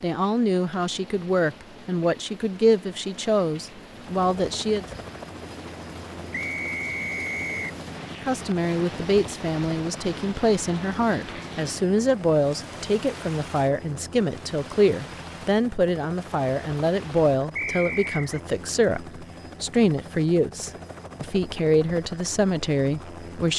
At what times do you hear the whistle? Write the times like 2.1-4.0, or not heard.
6.3-7.8, 17.6-18.4.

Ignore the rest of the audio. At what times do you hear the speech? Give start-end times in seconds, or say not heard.
0.0-4.8, 8.2-23.5.